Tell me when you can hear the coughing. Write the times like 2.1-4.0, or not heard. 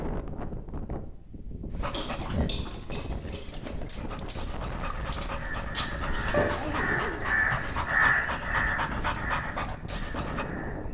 1.9-3.5, 6.2-7.0.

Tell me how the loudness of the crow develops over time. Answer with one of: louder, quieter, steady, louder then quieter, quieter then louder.
louder then quieter.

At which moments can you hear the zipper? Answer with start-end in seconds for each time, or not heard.
1.7-2.1, 6.5-7.3.